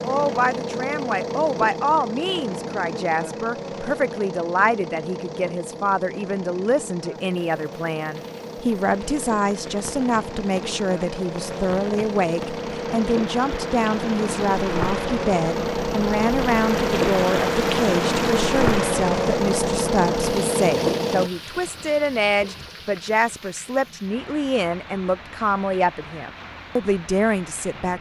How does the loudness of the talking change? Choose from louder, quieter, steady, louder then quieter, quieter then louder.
steady.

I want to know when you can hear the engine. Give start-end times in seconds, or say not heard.
0.0-21.3.